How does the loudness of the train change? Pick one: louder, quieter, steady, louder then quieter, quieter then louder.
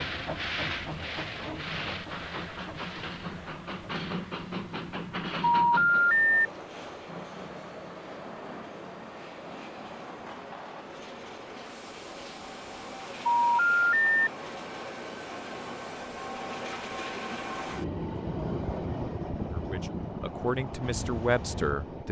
quieter then louder.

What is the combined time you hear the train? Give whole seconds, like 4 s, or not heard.
22 s.